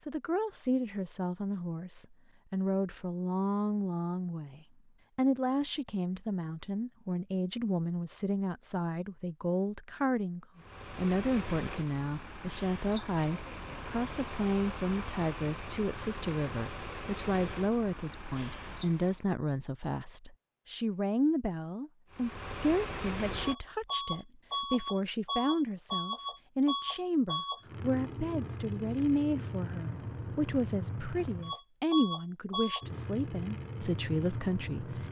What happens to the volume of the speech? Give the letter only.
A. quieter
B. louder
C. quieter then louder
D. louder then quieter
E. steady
E.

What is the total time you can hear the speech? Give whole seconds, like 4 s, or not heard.
35 s.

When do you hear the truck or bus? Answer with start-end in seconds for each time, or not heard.
10.6-19.2, 22.1-35.0.